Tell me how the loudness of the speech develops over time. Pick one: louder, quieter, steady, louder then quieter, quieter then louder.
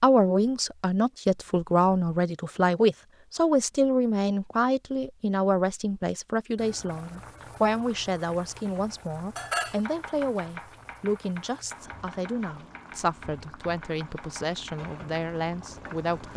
quieter.